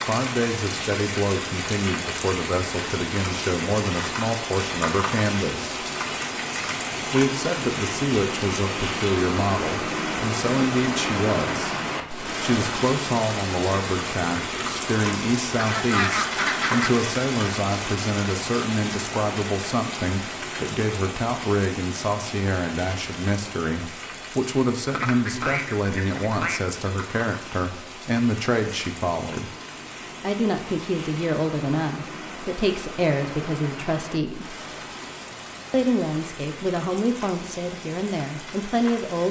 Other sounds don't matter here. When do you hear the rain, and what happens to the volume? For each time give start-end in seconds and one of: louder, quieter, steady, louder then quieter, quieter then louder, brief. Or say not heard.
0.0-39.2 quieter.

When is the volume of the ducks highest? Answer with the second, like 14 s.
16 s.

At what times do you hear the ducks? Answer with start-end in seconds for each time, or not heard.
15.6-17.1, 24.9-26.6.